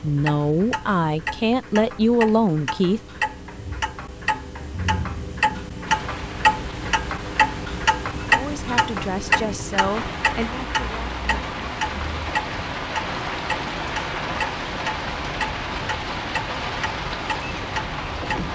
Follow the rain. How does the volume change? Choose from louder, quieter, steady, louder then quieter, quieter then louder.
louder.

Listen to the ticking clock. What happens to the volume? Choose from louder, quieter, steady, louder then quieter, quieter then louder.
louder then quieter.